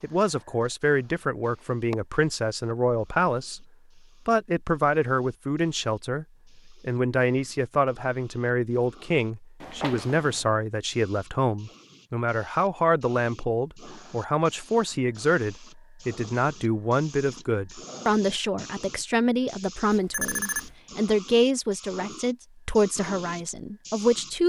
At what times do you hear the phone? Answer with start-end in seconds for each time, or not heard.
1.4-1.9, 9.6-10.6, 19.9-20.8.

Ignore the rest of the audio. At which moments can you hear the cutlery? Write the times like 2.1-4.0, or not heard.
not heard.